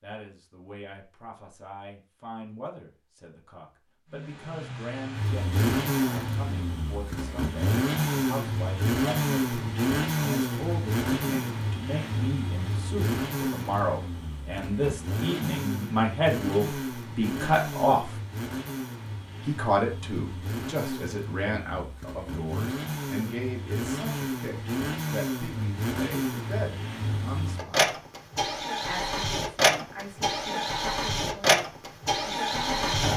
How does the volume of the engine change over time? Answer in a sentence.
The volume of the engine goes down, then up.